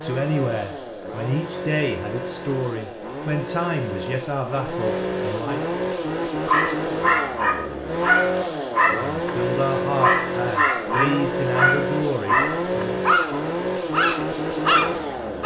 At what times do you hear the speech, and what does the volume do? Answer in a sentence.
You can hear the speech from 0.0 to 5.6 s, at a steady volume; and from 8.8 to 13.0 s, at a steady volume.